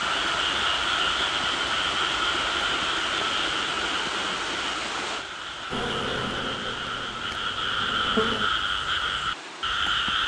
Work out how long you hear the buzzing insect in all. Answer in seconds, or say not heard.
3 s.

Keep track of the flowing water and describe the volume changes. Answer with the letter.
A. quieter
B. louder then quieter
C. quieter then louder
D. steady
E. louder
A.